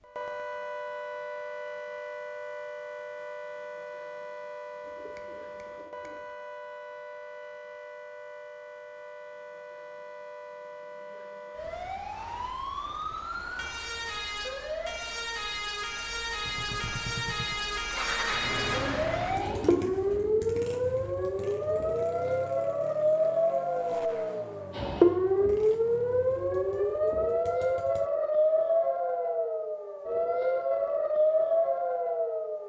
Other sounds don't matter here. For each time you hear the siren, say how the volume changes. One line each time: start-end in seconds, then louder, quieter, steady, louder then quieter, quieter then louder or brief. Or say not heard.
0.0-32.6 louder.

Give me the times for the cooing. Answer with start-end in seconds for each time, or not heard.
4.8-6.2, 18.6-20.7.